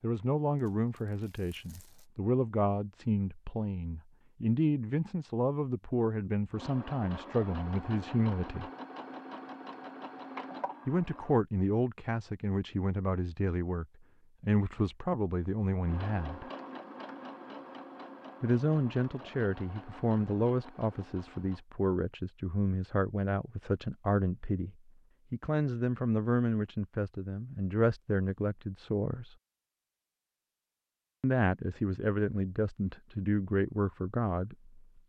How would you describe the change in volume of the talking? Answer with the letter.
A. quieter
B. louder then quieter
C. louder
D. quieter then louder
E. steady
E.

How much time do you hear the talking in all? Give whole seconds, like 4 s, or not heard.
29 s.